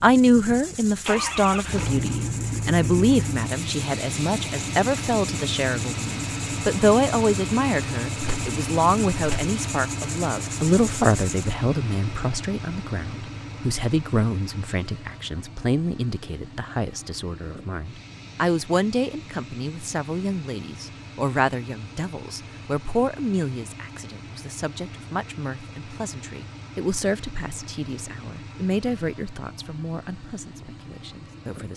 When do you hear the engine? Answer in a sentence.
The engine can be heard from 0.0 to 31.7 s.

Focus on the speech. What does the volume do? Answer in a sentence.
The loudness of the speech goes down.